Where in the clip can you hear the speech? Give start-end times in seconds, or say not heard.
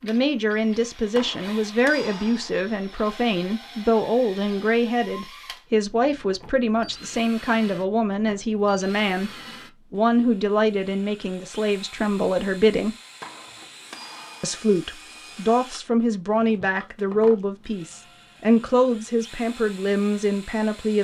0.0-12.9, 14.4-20.9.